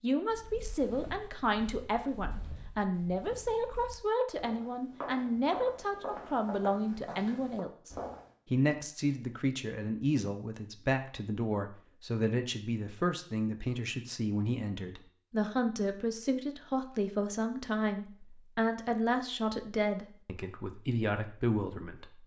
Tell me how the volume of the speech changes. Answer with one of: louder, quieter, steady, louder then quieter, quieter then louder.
steady.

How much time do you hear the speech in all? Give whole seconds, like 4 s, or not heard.
22 s.